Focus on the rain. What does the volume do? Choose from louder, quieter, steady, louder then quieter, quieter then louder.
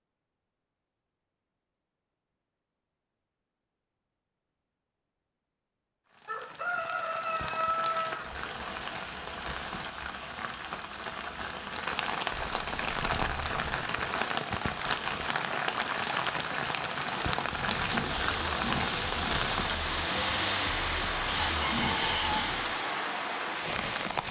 louder.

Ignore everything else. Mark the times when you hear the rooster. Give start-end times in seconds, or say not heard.
6.2-8.2, 21.6-22.4.